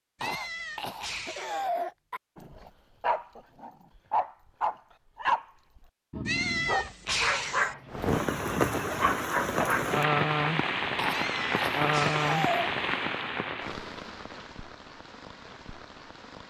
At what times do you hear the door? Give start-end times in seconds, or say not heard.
not heard.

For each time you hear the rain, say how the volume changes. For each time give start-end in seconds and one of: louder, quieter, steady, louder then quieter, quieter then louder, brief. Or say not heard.
7.9-16.4 quieter.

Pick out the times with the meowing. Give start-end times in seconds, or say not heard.
0.1-1.7, 6.2-7.8, 11.1-12.6.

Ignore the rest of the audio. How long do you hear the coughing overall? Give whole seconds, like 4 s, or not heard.
4 s.